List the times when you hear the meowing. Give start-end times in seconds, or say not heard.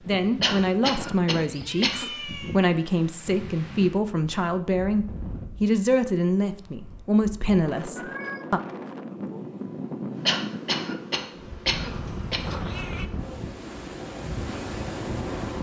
1.5-2.6, 8.0-8.5, 12.1-13.1.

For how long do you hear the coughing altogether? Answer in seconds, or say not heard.
4 s.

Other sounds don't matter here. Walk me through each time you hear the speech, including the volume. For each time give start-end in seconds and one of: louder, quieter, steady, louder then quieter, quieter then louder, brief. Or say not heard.
0.1-8.6 steady.